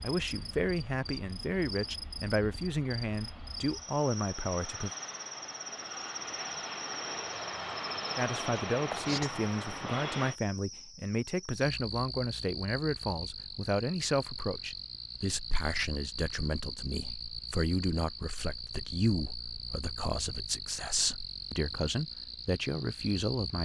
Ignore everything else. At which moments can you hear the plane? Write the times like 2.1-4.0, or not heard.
0.0-10.3.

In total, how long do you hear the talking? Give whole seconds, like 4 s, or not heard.
20 s.